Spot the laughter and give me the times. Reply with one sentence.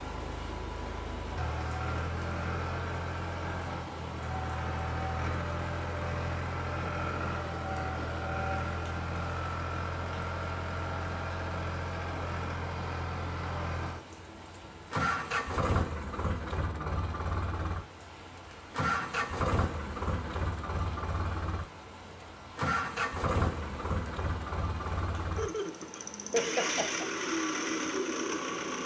The laughter can be heard from 26.3 to 27.1 s.